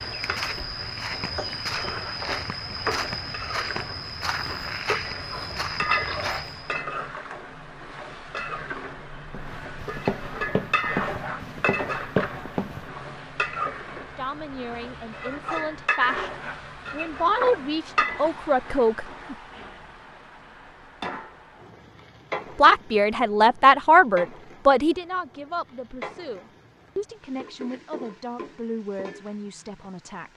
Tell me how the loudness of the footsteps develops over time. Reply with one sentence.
The loudness of the footsteps stays about the same.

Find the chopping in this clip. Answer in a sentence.
The chopping can't be heard in this clip.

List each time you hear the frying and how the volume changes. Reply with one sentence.
The frying can be heard from 0.0 to 30.3 s, getting quieter.